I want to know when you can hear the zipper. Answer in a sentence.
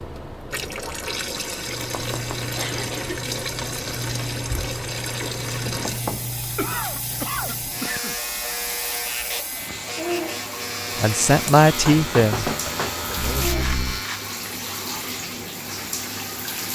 The zipper can't be heard in this clip.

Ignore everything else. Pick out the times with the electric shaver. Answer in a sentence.
You can hear the electric shaver from 1.6 to 14.4 s.